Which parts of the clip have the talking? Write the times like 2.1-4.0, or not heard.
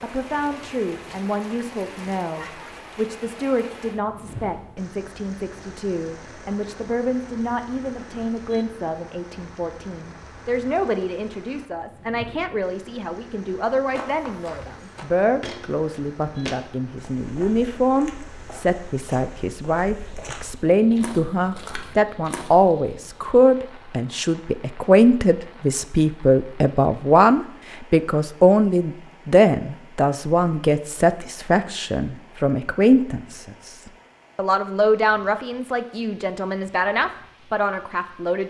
0.0-38.4.